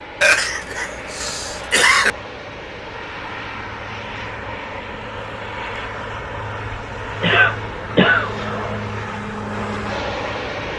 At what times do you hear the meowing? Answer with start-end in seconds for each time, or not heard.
not heard.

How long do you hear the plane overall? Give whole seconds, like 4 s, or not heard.
11 s.